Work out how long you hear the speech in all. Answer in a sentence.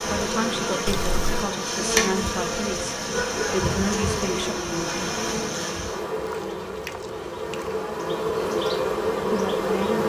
The speech can be heard for 5 seconds in total.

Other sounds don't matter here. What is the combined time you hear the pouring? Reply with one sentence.
The pouring can be heard for 2 seconds in total.